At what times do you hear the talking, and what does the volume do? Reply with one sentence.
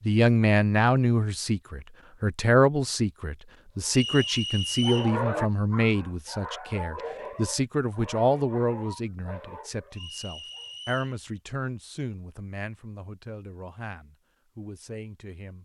You can hear the talking from 0.0 to 15.5 s, getting quieter.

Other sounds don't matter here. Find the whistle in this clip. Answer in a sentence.
The whistle can be heard from 3.9 to 5.2 s and from 9.9 to 11.2 s.